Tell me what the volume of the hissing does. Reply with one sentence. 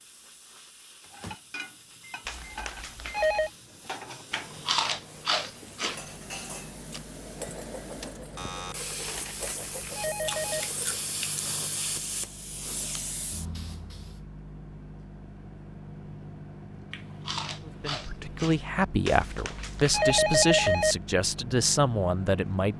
The loudness of the hissing goes up.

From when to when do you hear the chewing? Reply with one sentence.
You can hear the chewing from 4.3 to 6.0 s, from 9.0 to 11.6 s and from 16.9 to 18.6 s.